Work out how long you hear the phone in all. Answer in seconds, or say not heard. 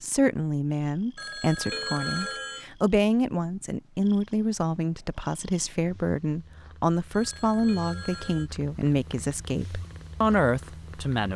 3 s.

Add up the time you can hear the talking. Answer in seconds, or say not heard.
11 s.